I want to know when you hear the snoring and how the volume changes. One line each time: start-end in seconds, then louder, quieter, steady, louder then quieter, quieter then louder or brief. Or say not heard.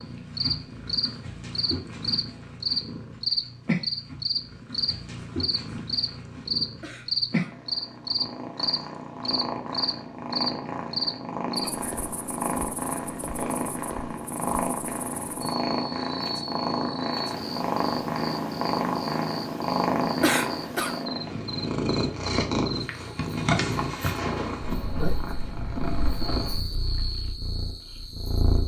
not heard.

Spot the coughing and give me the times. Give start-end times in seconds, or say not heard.
6.8-7.5, 20.2-20.9.